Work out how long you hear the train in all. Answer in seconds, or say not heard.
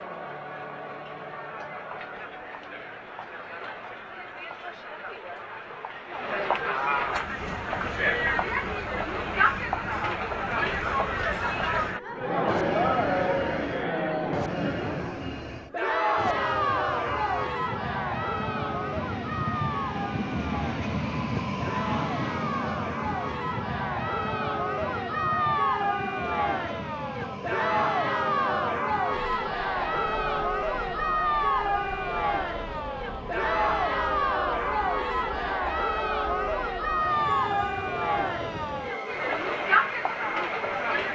34 s.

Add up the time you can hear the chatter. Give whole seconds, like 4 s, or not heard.
41 s.